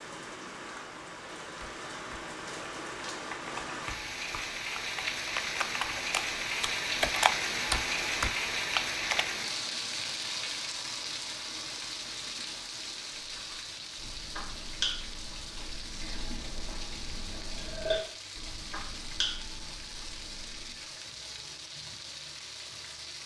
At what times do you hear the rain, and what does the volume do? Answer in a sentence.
You can hear the rain from 0.0 to 23.2 s, getting louder then quieter.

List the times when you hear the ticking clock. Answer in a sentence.
You can't hear the ticking clock here.